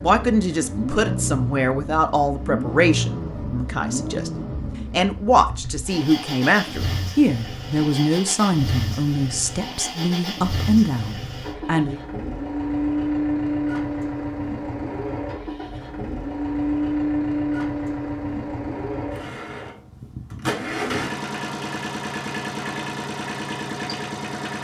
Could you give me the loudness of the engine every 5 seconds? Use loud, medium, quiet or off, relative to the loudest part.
loud, medium, loud, loud, loud.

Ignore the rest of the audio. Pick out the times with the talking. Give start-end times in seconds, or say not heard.
0.0-12.0.